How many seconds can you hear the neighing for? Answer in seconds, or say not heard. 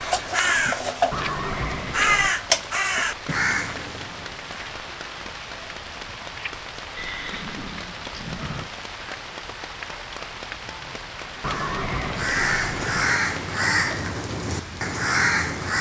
5 s.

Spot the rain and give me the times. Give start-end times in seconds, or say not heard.
0.0-15.7.